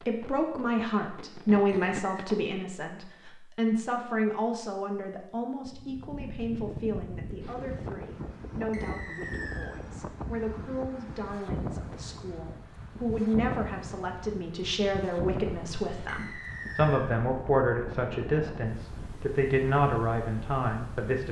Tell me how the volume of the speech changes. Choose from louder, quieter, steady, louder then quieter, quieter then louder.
quieter then louder.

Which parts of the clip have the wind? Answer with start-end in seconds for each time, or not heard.
5.7-21.2.